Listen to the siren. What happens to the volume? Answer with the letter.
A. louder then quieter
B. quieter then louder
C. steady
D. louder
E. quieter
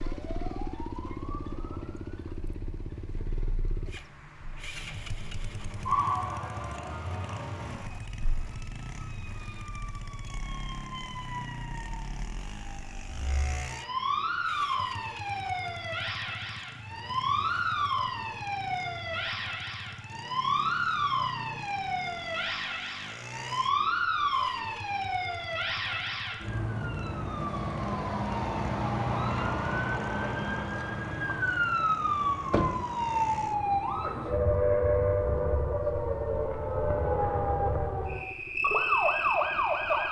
D.